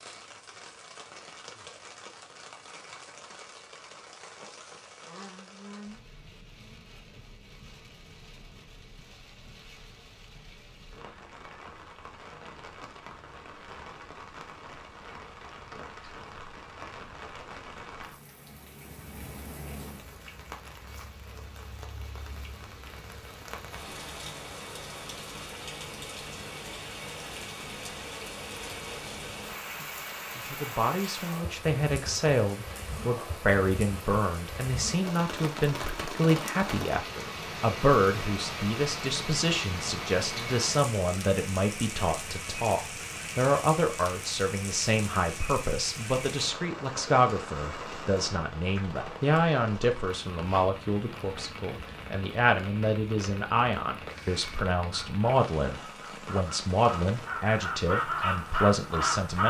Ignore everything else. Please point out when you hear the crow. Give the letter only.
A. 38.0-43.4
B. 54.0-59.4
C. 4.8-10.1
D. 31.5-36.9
B.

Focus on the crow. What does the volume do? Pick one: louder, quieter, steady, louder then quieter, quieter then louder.
louder.